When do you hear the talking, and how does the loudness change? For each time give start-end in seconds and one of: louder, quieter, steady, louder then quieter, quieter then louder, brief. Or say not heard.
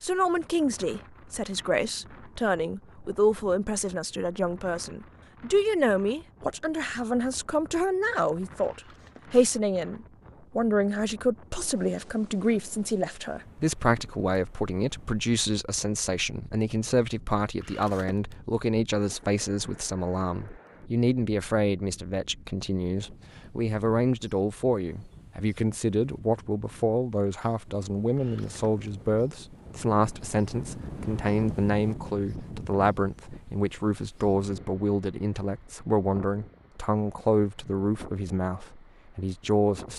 0.0-39.9 steady.